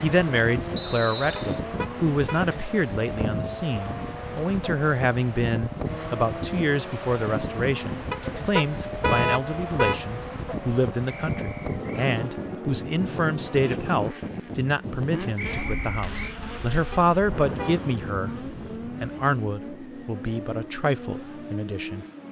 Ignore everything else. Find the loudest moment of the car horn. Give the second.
9 s.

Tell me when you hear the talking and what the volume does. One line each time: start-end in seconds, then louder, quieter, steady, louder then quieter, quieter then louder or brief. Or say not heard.
0.0-22.1 steady.